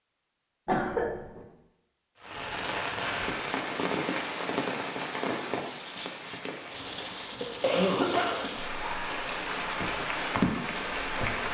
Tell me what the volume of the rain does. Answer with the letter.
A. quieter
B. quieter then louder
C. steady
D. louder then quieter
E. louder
B.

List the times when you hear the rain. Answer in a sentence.
The rain can be heard from 2.2 to 11.4 s.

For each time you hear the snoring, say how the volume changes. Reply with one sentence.
The snoring can't be heard in this clip.